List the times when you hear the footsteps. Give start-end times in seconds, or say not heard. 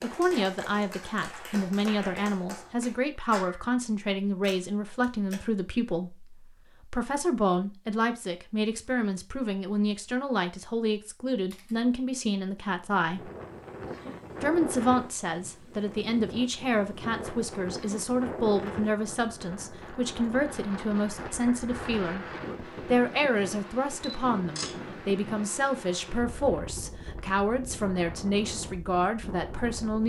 not heard.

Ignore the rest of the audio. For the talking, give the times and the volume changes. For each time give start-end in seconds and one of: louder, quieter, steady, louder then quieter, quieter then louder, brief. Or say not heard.
0.0-13.3 steady
14.4-30.0 steady.